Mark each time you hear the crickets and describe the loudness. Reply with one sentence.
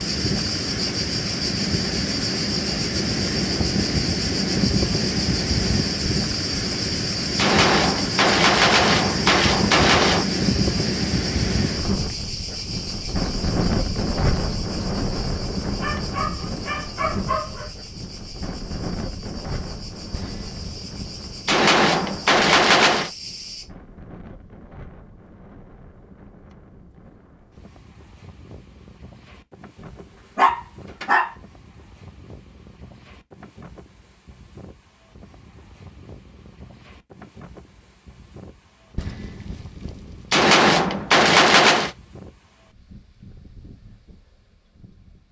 The crickets can be heard from 0.0 to 23.6 s, getting quieter.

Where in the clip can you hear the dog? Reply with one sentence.
The dog can be heard from 15.8 to 17.7 s and from 29.8 to 31.3 s.